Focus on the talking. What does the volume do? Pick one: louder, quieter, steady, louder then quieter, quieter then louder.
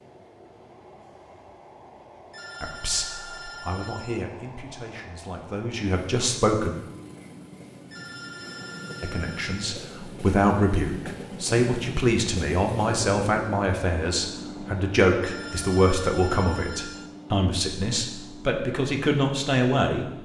louder.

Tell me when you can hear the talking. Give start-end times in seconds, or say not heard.
2.6-6.7, 9.0-20.1.